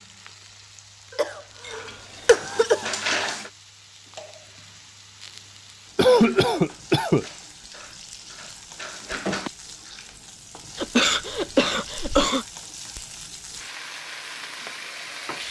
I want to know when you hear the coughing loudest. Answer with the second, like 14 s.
6 s.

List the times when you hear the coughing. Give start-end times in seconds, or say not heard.
1.1-3.0, 6.0-7.2, 10.8-12.4.